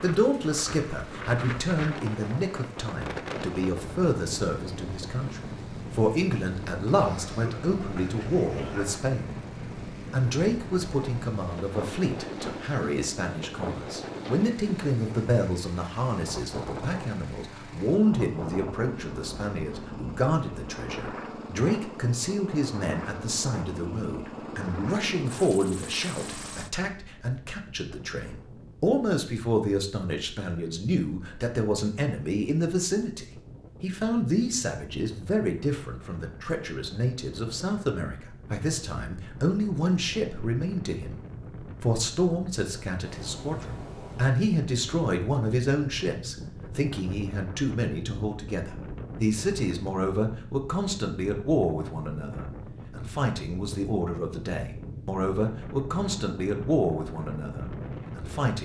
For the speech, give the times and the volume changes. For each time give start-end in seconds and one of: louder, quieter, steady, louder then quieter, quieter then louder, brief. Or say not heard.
0.0-58.5 steady.